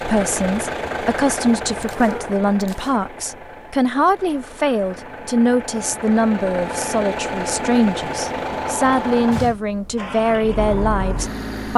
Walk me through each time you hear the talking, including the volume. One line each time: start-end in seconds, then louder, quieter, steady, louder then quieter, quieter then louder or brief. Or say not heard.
0.0-11.7 steady.